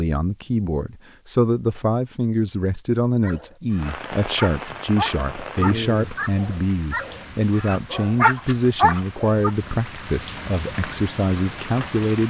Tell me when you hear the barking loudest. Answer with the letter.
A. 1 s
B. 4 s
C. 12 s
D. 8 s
D.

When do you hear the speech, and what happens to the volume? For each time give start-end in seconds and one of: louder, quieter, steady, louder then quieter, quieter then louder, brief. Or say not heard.
0.0-12.2 steady.